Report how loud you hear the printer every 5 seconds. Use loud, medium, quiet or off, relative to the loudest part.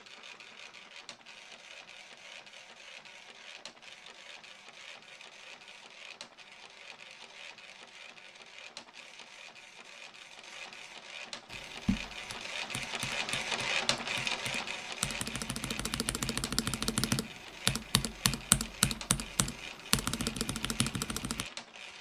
quiet, quiet, loud, medium, medium.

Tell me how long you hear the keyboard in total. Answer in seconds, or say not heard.
10 s.